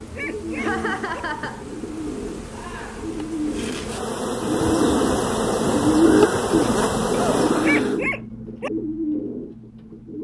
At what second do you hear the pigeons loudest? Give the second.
6 s.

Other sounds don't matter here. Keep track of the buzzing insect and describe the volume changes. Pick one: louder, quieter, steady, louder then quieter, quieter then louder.
louder.